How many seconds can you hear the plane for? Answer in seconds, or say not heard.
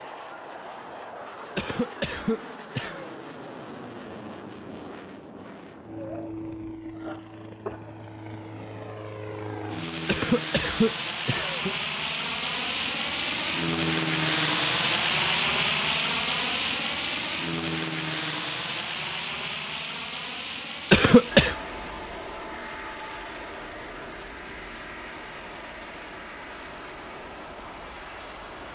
29 s.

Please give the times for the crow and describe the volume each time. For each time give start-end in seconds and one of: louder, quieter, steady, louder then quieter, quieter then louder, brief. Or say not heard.
not heard.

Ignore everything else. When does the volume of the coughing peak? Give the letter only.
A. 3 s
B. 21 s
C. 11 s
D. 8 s
B.